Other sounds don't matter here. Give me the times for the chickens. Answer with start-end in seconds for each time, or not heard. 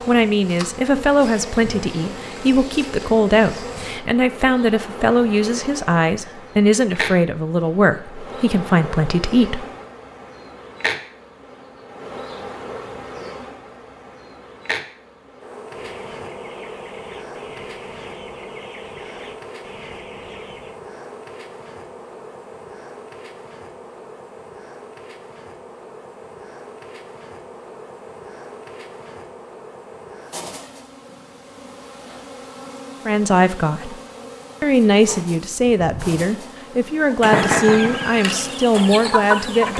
15.7-20.8, 37.1-39.7.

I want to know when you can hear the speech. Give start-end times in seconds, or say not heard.
0.1-9.7, 33.0-34.0, 34.6-39.7.